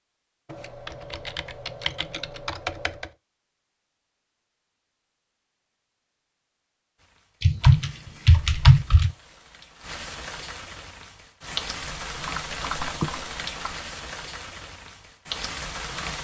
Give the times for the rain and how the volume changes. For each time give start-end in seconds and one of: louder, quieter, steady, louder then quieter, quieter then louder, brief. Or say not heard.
7.0-16.2 louder.